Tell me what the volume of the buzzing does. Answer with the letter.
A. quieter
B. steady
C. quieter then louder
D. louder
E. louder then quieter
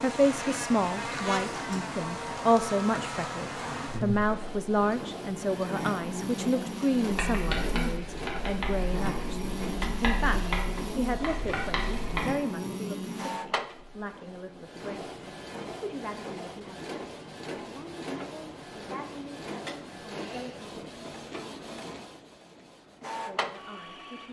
B.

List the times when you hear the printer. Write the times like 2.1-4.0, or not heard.
0.0-24.2.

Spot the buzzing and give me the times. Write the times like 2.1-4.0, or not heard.
0.0-13.4.